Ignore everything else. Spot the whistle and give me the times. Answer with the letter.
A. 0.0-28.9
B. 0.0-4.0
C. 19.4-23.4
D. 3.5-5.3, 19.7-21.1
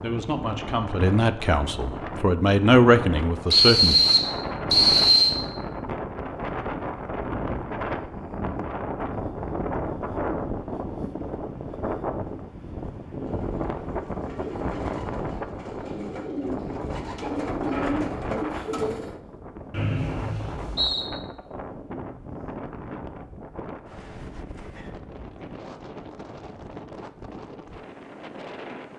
D.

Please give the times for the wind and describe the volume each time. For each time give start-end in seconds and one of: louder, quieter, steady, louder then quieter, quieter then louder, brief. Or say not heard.
0.0-28.9 quieter.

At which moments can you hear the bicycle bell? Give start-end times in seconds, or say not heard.
not heard.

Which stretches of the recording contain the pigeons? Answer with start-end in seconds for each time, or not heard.
13.2-19.2.